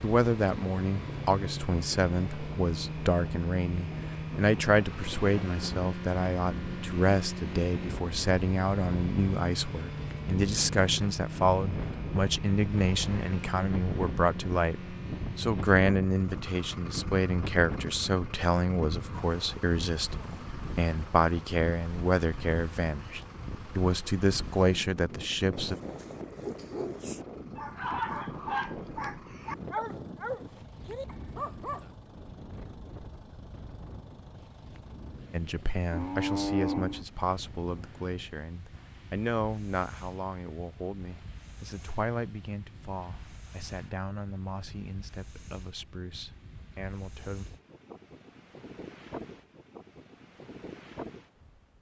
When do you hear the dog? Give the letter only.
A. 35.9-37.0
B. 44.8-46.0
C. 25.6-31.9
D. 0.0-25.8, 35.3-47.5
C.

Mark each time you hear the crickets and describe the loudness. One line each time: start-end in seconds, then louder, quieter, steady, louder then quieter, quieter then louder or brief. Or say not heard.
not heard.